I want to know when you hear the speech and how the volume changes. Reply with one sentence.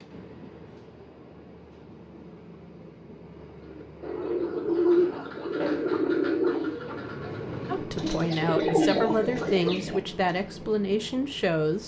The speech can be heard from 7.7 to 11.8 s, at a steady volume.